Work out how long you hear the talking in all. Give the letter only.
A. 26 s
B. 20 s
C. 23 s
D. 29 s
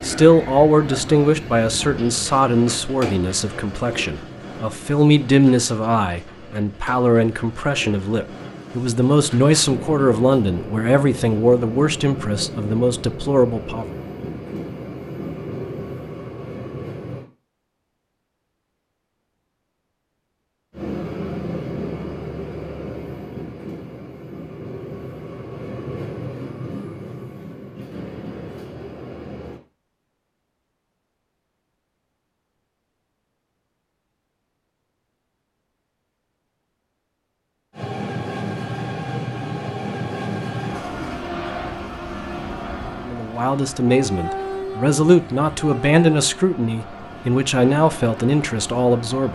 B.